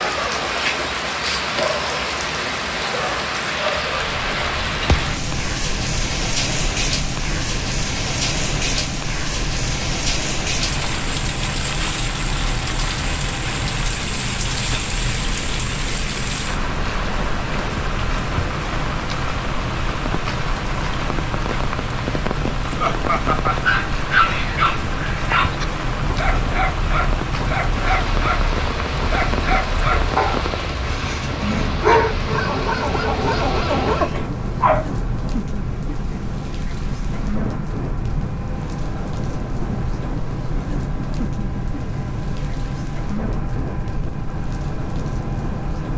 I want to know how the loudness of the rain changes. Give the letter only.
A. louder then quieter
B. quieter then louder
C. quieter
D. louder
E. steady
C.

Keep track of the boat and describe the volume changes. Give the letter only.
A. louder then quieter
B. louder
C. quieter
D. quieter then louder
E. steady
E.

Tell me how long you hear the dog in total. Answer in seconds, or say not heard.
11 s.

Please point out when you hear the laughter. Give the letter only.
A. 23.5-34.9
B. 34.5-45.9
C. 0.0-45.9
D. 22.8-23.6
D.